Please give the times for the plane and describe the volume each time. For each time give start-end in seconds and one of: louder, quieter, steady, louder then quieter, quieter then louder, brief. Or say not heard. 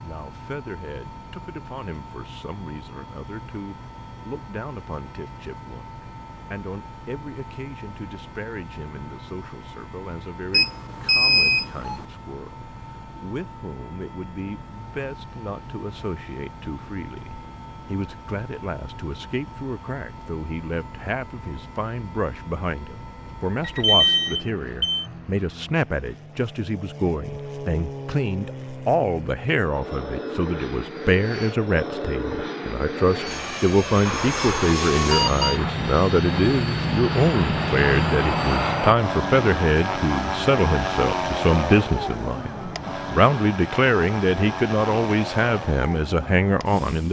0.0-47.0 louder.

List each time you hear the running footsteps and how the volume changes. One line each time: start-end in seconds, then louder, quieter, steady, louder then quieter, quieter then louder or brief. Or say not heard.
not heard.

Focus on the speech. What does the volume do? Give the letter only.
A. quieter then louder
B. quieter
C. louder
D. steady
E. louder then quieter
C.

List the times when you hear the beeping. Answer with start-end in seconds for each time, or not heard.
10.5-12.0, 23.6-25.1, 34.0-35.6.